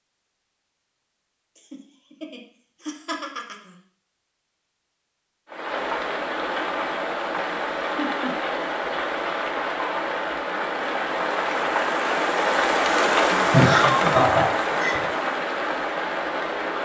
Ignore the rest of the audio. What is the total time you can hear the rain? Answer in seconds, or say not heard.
11 s.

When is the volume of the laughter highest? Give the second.
14 s.